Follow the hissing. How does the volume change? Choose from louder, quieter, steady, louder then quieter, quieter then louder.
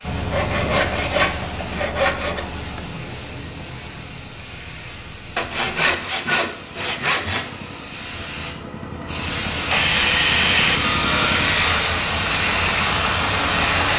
louder.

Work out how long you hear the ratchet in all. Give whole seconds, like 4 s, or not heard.
not heard.